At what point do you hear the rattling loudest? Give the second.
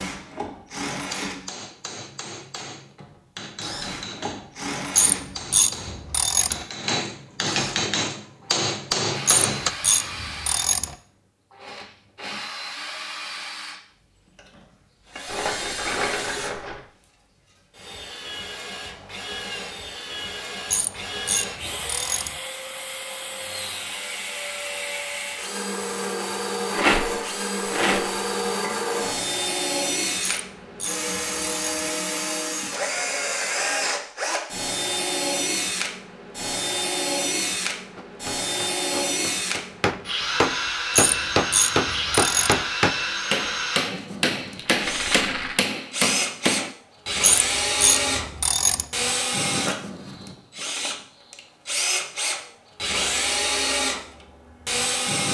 27 s.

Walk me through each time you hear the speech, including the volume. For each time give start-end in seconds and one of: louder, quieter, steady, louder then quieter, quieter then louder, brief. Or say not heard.
not heard.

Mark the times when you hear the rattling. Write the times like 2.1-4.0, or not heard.
15.2-16.8, 26.7-28.6, 44.5-45.6.